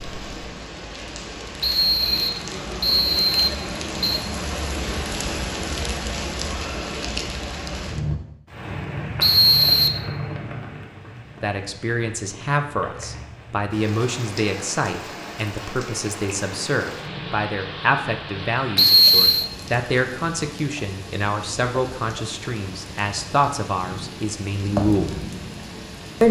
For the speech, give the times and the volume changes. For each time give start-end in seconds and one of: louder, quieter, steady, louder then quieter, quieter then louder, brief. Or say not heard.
11.4-25.2 steady.